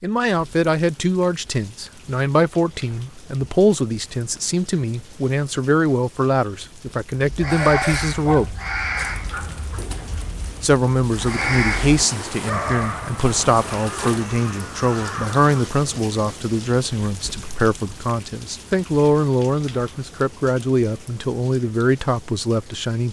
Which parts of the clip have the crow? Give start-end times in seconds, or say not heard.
7.2-15.5.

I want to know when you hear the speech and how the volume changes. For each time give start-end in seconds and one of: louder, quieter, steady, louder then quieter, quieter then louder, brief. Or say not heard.
0.0-8.6 steady
10.6-23.0 steady.